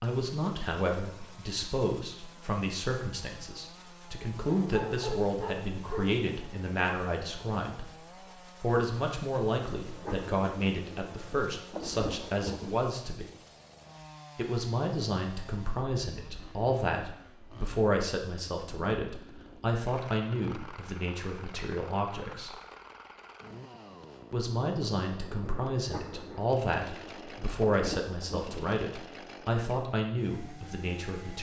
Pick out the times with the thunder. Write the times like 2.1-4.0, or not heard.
9.8-12.8, 25.4-28.6.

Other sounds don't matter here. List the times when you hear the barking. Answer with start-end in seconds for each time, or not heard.
4.5-6.2.